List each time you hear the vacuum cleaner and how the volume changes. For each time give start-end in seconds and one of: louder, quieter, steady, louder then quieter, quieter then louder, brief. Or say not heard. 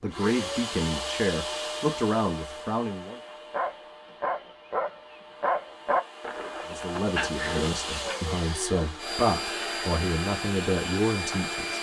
0.0-11.7 quieter then louder.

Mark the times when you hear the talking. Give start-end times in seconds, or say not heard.
0.0-3.2, 6.7-11.7.